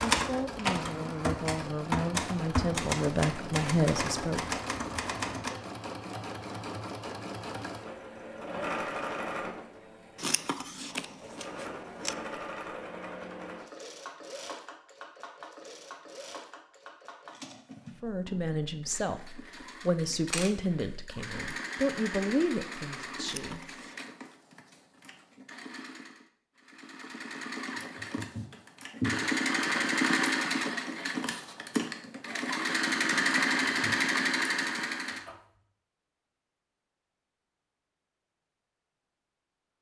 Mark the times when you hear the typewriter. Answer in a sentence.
You can hear the typewriter from 0.0 to 5.5 s.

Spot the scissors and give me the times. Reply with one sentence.
The scissors can be heard from 10.2 to 12.2 s and from 23.2 to 24.1 s.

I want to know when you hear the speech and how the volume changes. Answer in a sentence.
You can hear the speech from 0.1 to 4.4 s, getting louder; and from 18.0 to 23.6 s, at a steady volume.